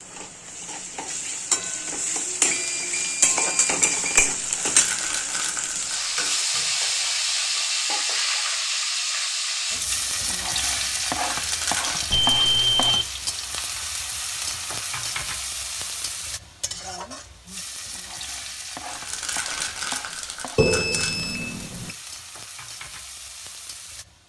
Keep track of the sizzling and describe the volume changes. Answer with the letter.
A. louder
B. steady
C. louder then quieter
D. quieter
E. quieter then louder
D.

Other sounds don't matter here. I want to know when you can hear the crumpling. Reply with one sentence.
You can hear the crumpling from 4.6 to 6.3 s, from 11.3 to 12.1 s and from 18.9 to 21.2 s.